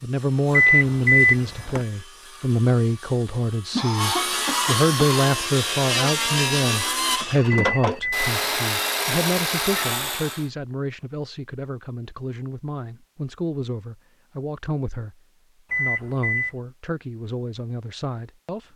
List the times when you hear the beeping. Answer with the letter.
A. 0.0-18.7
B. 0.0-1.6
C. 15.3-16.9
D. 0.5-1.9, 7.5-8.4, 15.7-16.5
D.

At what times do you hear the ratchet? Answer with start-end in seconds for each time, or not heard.
not heard.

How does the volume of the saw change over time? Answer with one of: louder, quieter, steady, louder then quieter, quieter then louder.
louder.